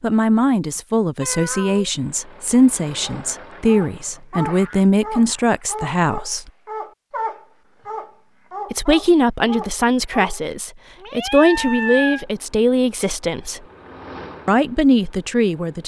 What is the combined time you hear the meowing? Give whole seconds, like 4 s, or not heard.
2 s.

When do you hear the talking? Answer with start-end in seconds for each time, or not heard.
0.0-6.5, 8.7-13.6, 14.4-15.8.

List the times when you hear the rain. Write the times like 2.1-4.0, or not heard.
not heard.